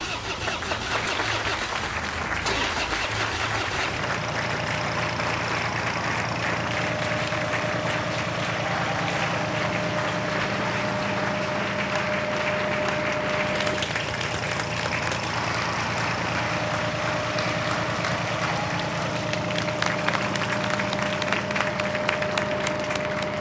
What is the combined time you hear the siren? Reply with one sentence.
You can't hear the siren here.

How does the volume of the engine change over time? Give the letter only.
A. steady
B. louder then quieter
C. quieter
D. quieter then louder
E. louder
A.